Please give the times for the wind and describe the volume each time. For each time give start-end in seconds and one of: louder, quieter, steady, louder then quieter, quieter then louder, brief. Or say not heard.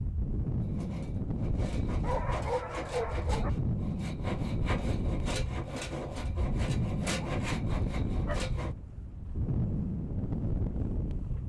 0.0-11.4 steady.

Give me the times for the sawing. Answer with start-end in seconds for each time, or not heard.
0.7-8.8.